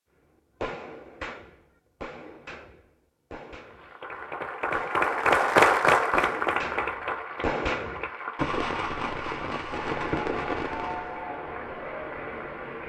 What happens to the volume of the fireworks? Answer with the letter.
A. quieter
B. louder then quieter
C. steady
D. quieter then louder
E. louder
D.